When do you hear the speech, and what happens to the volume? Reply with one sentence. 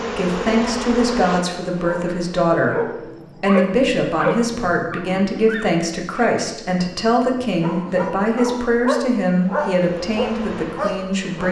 The speech can be heard from 0.1 to 11.4 s, at a steady volume.